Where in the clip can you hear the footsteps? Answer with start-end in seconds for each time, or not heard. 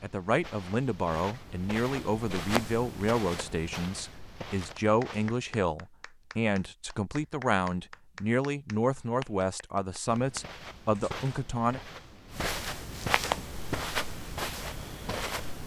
0.0-5.6, 10.1-15.6.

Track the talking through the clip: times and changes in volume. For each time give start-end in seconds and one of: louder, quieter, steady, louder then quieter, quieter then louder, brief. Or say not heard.
0.0-11.8 steady.